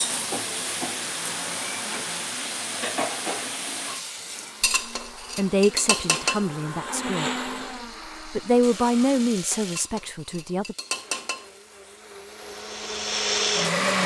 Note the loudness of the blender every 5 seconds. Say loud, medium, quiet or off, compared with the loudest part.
quiet, medium, loud.